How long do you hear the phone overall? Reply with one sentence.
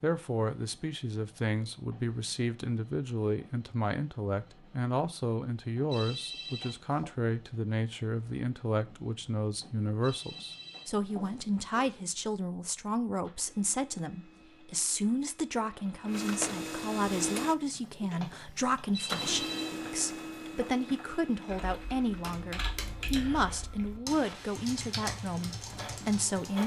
You can hear the phone for 4 seconds altogether.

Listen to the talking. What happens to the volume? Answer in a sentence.
The loudness of the talking stays about the same.